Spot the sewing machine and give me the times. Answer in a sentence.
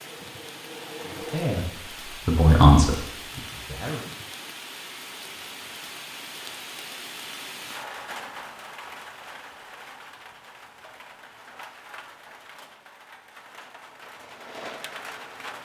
The sewing machine can be heard from 0.0 to 1.6 s and from 14.2 to 15.3 s.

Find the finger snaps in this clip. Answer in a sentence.
You can't hear the finger snaps here.